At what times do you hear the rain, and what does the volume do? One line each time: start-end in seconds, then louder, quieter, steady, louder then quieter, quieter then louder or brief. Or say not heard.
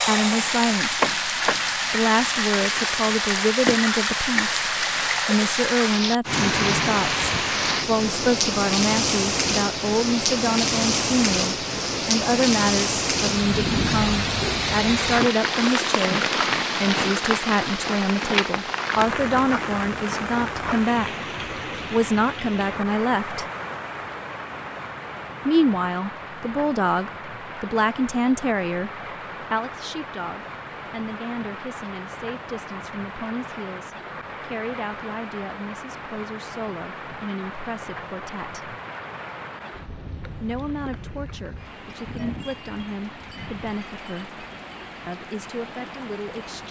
0.0-46.6 quieter.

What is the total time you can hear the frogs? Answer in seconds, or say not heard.
not heard.